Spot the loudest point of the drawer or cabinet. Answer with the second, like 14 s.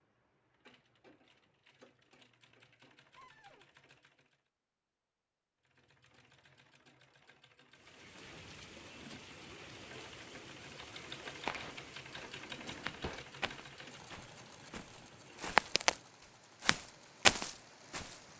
13 s.